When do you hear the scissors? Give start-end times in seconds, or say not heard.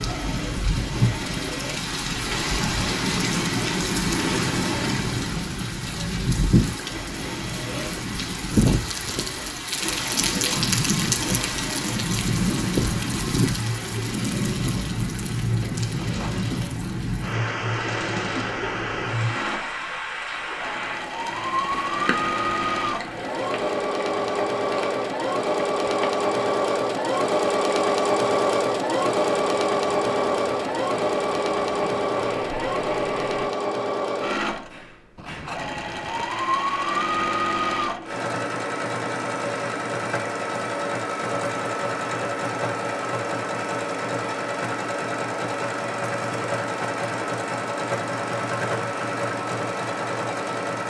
15.9-16.4, 35.1-36.2.